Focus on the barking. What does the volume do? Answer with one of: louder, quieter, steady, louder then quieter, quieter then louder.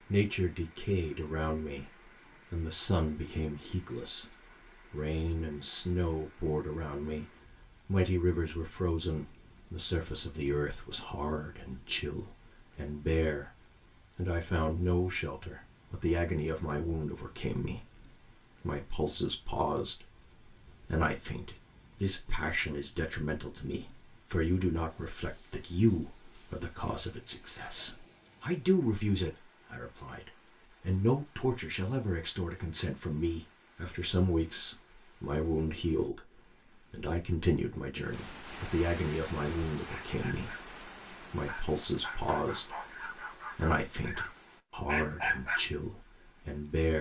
louder.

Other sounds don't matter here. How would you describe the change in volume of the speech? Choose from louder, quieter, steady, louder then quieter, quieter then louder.
steady.